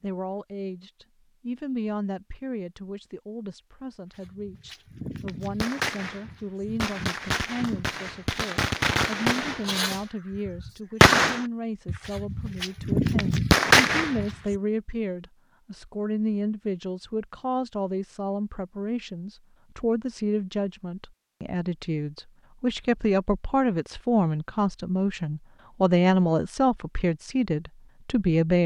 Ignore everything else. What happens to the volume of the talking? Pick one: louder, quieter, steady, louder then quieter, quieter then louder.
louder.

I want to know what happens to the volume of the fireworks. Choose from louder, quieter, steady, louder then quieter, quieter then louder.
louder.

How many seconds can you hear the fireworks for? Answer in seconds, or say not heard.
10 s.